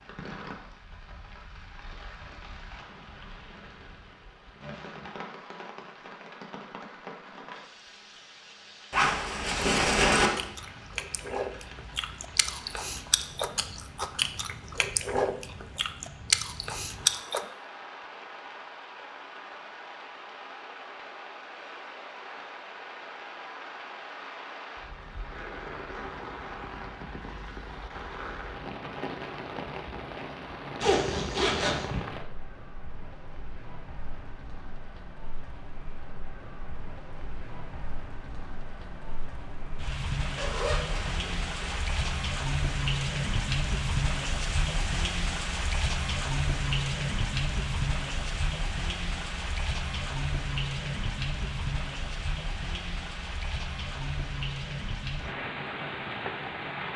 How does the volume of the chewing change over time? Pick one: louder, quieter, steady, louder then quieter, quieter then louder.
louder.